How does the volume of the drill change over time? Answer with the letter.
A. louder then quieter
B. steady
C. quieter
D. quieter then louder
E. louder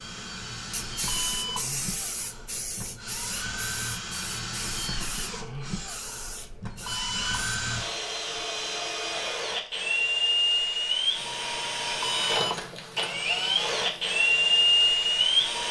E.